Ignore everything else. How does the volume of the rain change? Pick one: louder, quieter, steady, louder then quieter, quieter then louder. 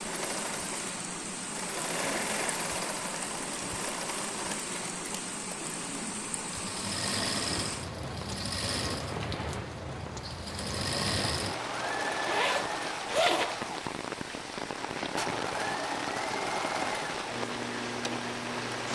steady.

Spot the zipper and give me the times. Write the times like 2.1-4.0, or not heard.
12.1-13.6.